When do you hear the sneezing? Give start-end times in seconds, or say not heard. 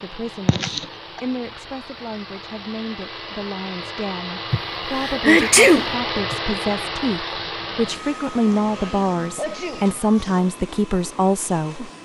0.5-1.2, 4.5-6.3, 8.5-10.4.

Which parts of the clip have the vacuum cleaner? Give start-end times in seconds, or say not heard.
0.0-11.9.